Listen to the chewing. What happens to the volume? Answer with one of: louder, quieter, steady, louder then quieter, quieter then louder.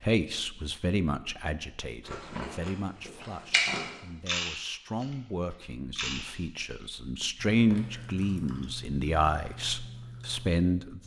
louder then quieter.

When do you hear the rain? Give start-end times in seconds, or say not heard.
not heard.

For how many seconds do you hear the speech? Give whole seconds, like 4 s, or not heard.
11 s.